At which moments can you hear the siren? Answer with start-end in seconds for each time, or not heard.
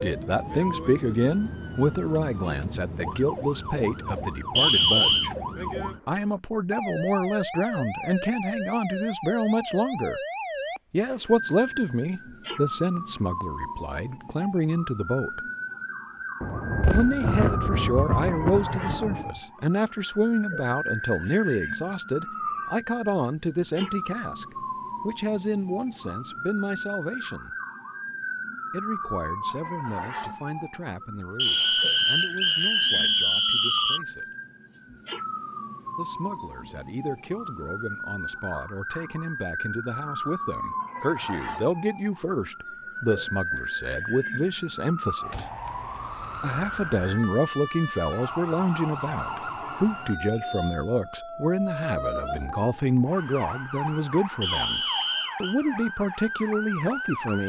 0.0-57.4.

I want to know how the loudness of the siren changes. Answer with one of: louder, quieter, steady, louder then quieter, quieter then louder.
steady.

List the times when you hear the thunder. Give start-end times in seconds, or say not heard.
16.4-19.4.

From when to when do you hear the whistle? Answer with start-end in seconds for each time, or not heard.
4.5-5.3, 31.4-34.0, 54.4-55.5.